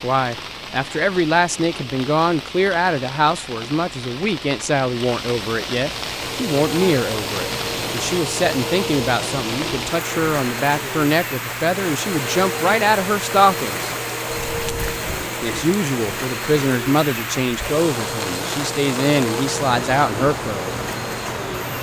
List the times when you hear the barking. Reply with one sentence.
You can't hear the barking here.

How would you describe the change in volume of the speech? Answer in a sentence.
The loudness of the speech stays about the same.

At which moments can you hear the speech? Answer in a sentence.
The speech can be heard from 0.0 to 13.8 s and from 15.4 to 20.7 s.